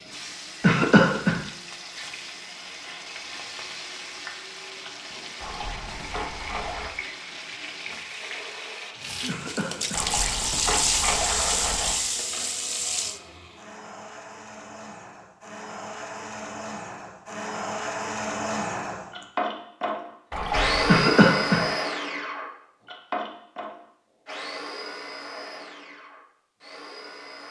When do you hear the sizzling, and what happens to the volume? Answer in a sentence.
The sizzling can be heard from 0.0 to 13.2 s, getting louder.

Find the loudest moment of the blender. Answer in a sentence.
The volume of the blender peaks at 21 seconds.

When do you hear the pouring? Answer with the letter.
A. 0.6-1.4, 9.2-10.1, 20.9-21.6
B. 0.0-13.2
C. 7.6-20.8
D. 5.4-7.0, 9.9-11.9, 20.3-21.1
D.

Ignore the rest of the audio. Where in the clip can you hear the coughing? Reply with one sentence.
You can hear the coughing from 0.6 to 1.4 s, from 9.2 to 10.1 s and from 20.9 to 21.6 s.